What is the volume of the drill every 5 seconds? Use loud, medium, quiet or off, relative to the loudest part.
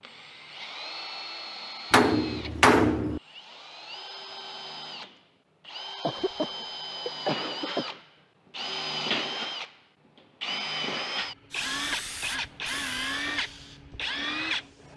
medium, loud, loud.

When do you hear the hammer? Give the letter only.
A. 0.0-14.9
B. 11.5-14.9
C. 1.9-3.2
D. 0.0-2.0
C.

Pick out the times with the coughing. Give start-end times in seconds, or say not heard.
6.0-8.0.